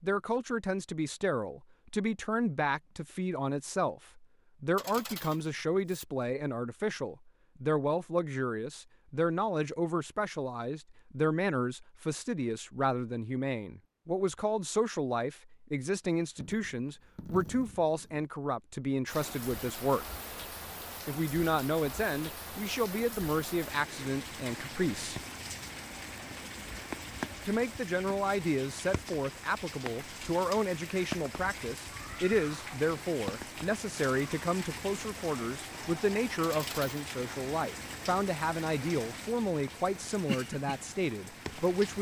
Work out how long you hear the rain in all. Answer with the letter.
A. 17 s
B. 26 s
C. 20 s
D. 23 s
D.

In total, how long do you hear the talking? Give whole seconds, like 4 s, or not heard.
39 s.